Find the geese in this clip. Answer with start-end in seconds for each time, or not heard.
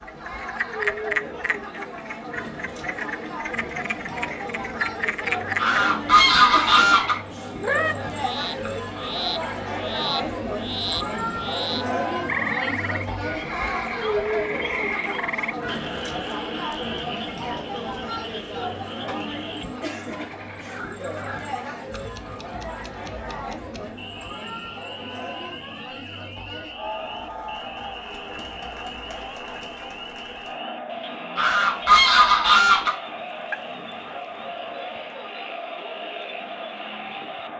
5.5-7.2, 31.4-32.9.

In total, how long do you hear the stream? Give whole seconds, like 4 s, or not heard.
not heard.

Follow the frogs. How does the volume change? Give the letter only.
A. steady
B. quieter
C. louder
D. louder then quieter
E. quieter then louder
B.